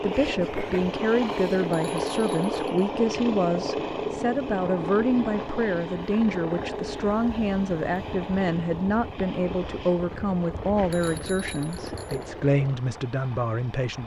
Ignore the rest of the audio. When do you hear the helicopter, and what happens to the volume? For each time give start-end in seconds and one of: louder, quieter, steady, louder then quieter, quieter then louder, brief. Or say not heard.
0.0-14.0 quieter.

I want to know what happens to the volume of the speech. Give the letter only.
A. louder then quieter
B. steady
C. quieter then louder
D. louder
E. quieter
B.